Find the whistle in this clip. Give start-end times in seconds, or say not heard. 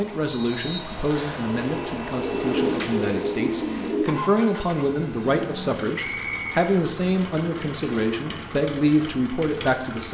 0.3-1.4, 6.0-6.7.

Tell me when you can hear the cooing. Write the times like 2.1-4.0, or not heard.
1.6-4.2.